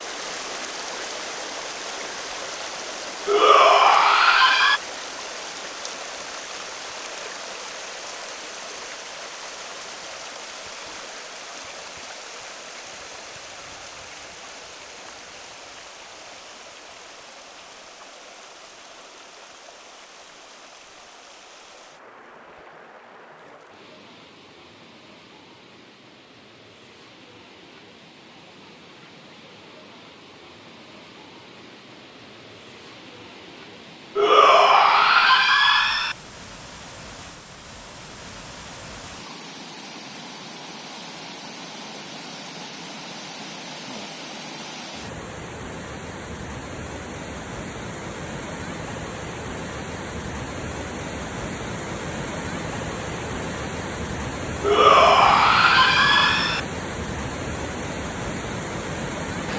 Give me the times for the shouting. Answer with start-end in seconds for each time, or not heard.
3.2-4.8, 34.1-36.1, 54.6-56.6.